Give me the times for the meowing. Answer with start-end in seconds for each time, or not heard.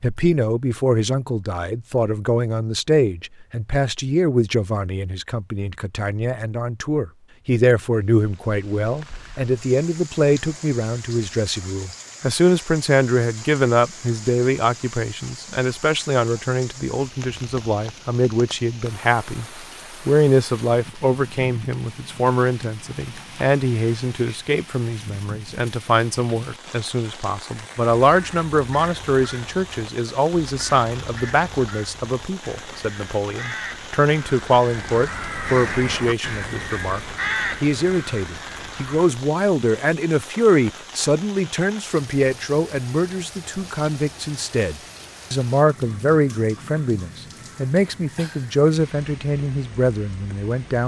not heard.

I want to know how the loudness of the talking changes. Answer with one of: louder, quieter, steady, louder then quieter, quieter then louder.
steady.